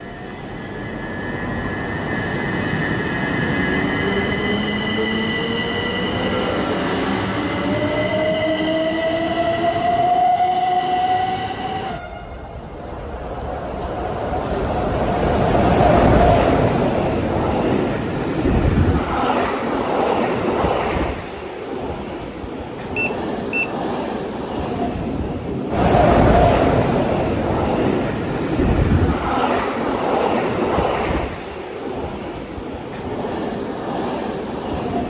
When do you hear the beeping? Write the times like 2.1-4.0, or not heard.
22.9-23.7.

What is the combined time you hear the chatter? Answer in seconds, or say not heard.
not heard.